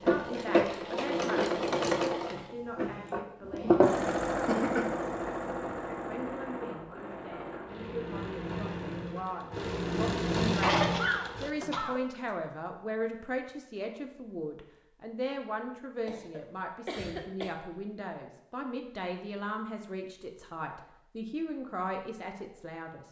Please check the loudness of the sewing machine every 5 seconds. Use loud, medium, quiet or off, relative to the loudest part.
loud, medium, loud, off, off.